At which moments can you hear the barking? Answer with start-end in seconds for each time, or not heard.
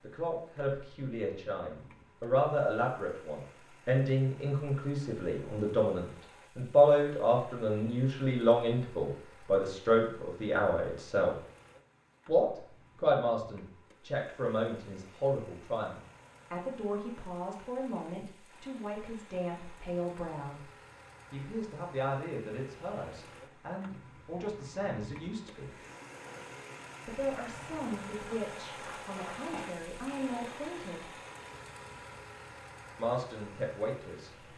28.6-30.6.